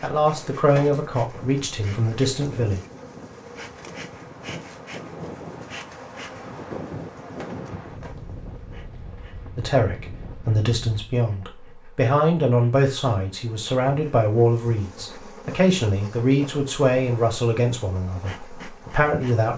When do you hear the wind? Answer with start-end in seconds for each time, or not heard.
0.2-11.1.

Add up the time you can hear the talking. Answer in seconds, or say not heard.
13 s.